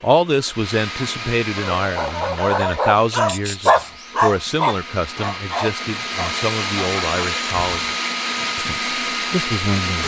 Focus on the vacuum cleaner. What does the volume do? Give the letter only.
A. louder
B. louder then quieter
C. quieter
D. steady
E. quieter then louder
E.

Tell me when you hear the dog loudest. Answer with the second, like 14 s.
4 s.